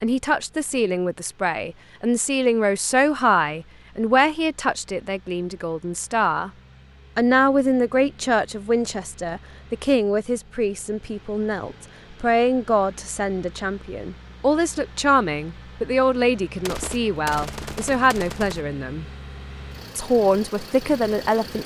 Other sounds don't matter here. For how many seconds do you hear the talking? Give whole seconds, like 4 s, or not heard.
20 s.